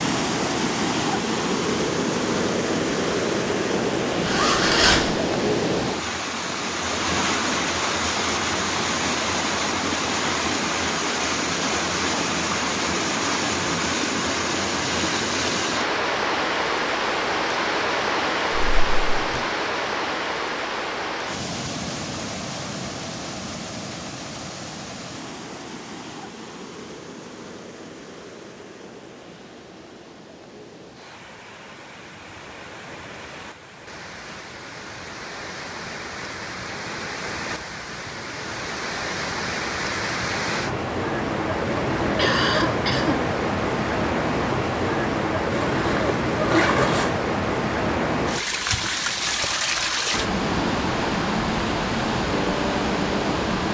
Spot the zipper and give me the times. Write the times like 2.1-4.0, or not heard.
4.2-5.1, 18.6-19.4, 45.6-47.0.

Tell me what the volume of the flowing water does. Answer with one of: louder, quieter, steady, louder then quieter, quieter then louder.
quieter then louder.